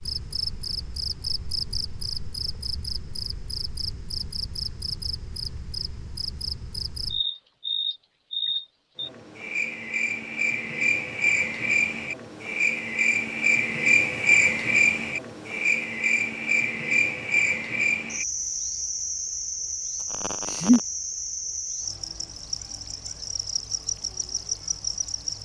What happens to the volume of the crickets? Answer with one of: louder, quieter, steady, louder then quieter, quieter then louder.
louder then quieter.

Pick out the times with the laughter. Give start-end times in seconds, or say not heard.
20.0-20.8.